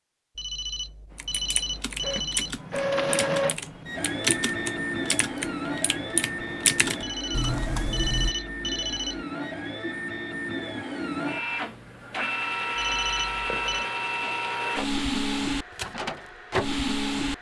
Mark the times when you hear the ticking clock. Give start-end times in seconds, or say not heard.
not heard.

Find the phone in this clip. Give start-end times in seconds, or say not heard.
0.3-2.6, 7.0-9.2, 12.8-13.8.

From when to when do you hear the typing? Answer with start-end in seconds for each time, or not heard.
1.1-8.3.